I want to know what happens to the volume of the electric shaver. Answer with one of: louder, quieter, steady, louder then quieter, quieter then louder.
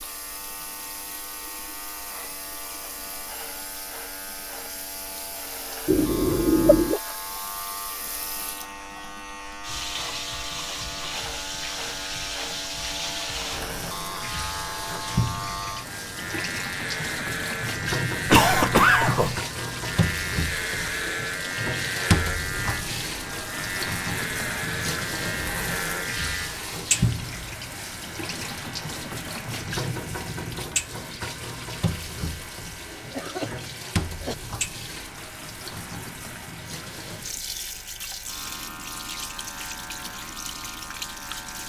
louder then quieter.